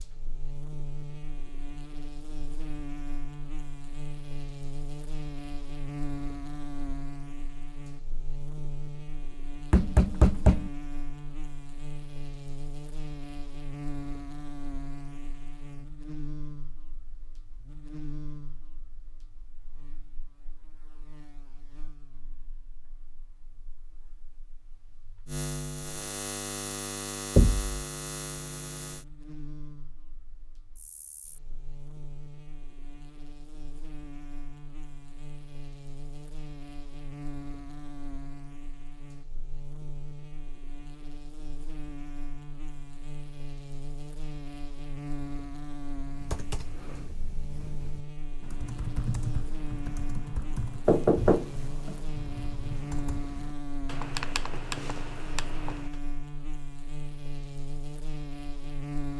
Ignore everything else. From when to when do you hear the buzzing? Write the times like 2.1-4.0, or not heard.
0.0-59.1.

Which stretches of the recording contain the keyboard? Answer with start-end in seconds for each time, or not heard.
46.0-56.0.